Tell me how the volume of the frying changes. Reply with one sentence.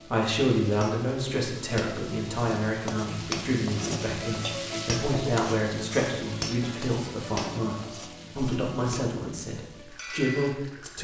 The loudness of the frying goes up, then down.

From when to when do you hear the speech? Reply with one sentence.
You can hear the speech from 0.0 to 10.9 s.